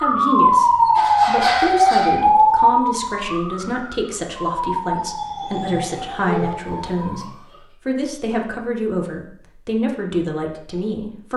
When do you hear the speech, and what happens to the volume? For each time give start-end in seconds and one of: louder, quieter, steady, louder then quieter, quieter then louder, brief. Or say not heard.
0.0-11.3 steady.